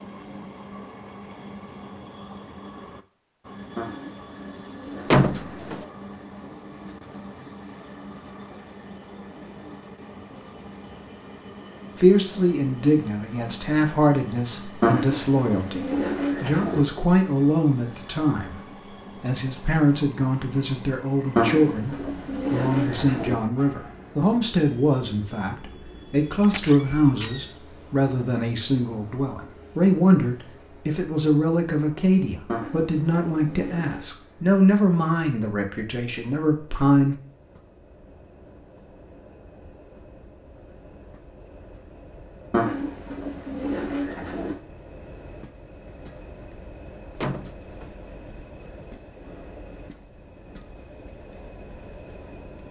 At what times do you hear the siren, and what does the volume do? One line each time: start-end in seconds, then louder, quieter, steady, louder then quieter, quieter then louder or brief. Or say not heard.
not heard.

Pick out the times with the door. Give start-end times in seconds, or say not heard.
5.1-5.8, 26.5-27.4, 47.2-48.0.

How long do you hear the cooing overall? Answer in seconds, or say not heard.
10 s.